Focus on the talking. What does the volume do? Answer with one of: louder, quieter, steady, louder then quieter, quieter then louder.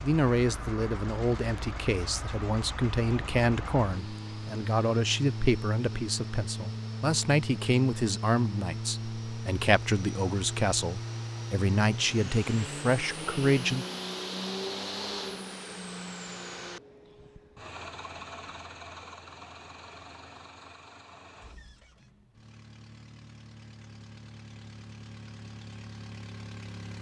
steady.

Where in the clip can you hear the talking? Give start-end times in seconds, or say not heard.
0.0-13.8.